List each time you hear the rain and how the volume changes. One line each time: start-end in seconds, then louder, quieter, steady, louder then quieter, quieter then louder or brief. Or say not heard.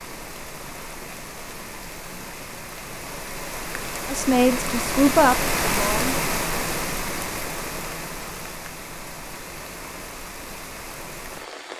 0.0-11.7 louder then quieter.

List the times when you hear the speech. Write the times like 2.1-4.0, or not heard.
4.1-6.2.